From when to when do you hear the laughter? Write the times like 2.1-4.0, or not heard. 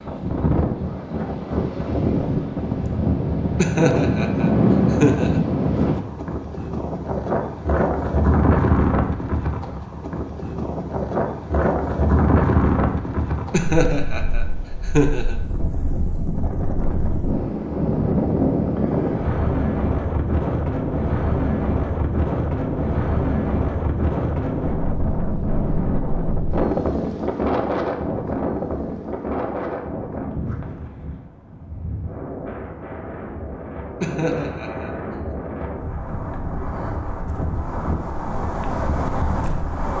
3.5-5.4, 13.5-15.4, 34.0-35.0.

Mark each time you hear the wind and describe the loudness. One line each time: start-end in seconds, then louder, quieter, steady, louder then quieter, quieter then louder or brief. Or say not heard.
0.0-39.9 quieter.